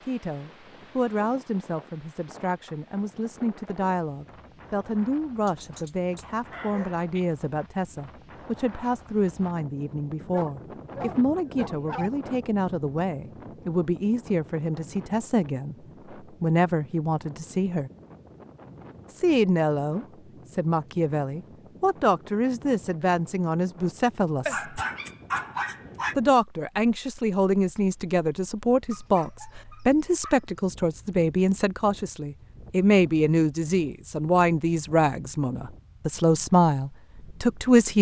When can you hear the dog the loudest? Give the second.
25 s.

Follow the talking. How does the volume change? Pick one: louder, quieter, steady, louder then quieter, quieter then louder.
louder.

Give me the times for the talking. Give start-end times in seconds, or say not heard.
0.1-17.9, 19.1-24.8, 26.1-37.9.